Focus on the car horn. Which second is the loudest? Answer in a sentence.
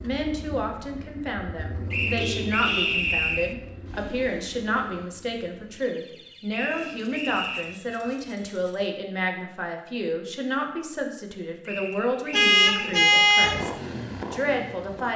The volume of the car horn peaks at 13 seconds.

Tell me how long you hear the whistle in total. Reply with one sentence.
The whistle can be heard for 4 seconds in total.